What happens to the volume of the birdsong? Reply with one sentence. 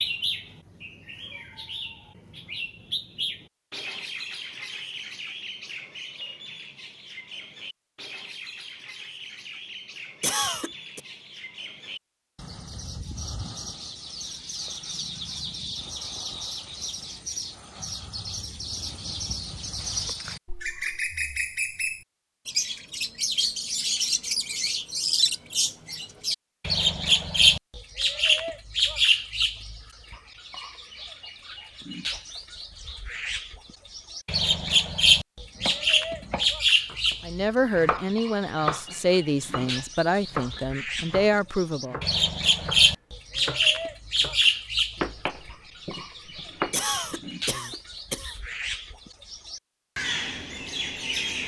The loudness of the birdsong goes up.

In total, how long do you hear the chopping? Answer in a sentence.
You can hear the chopping for 12 seconds altogether.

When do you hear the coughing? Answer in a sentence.
The coughing can be heard from 10.2 to 11.0 s and from 46.7 to 48.4 s.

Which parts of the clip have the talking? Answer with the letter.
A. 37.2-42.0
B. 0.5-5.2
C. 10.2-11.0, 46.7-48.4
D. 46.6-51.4
A.